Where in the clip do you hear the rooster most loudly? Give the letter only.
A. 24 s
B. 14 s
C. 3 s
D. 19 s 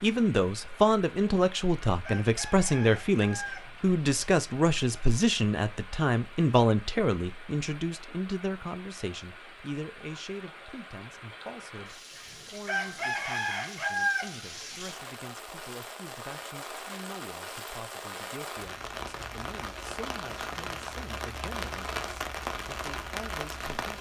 B.